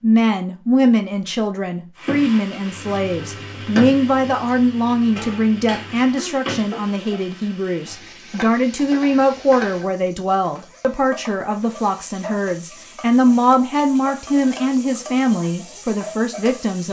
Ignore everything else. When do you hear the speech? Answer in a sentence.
You can hear the speech from 0.0 to 16.8 s.